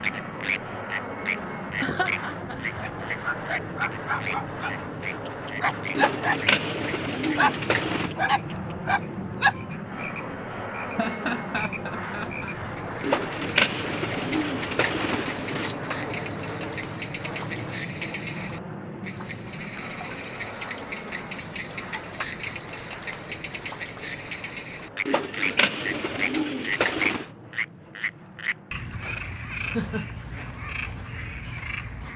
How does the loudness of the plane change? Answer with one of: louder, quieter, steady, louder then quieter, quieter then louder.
quieter.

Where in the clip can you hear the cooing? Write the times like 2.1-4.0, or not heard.
6.0-8.2, 13.0-15.8, 25.1-27.3.